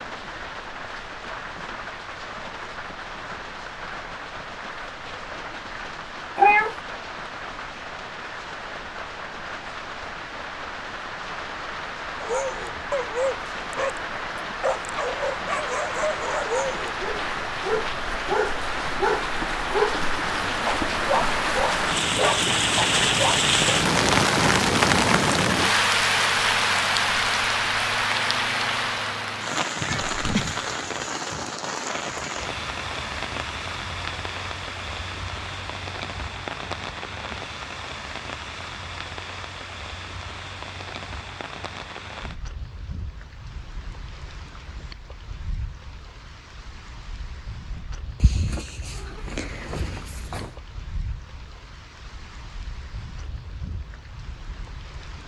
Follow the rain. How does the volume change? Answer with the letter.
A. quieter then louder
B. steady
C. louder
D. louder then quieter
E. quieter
D.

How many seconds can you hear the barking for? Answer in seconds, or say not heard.
11 s.